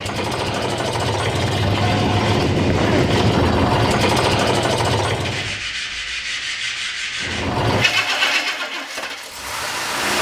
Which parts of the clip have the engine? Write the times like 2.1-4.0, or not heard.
0.0-5.6, 7.2-10.1.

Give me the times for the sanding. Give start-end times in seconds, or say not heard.
1.8-3.4, 5.2-7.5.